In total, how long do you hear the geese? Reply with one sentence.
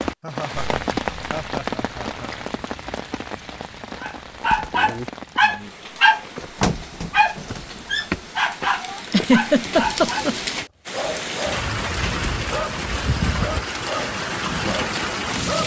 The geese can't be heard in this clip.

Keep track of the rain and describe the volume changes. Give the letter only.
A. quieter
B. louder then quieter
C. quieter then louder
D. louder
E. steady
C.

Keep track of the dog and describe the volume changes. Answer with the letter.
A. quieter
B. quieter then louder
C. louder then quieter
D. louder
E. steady
A.